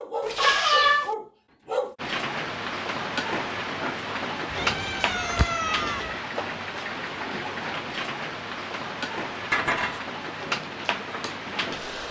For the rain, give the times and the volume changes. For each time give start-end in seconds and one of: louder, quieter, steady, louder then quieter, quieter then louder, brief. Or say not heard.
1.9-12.0 steady.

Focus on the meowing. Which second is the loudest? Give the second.
1 s.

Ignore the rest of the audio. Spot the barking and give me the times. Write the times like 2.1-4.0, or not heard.
0.0-1.9.